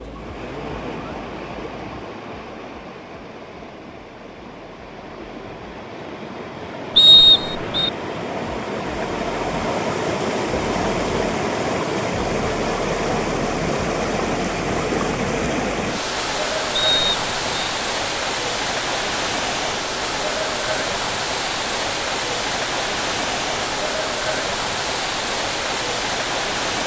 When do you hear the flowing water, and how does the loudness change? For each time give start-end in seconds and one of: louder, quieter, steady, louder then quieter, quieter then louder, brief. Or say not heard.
0.0-26.8 louder.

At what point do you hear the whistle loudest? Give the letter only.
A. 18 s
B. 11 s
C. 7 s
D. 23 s
C.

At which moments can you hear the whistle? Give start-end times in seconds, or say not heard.
7.0-7.9, 16.8-17.7.